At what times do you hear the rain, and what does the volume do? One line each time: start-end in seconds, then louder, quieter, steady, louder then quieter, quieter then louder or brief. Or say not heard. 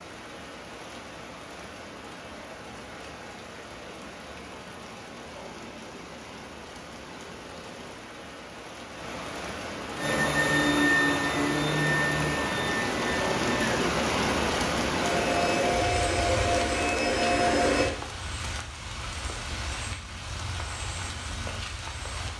0.0-22.3 louder then quieter.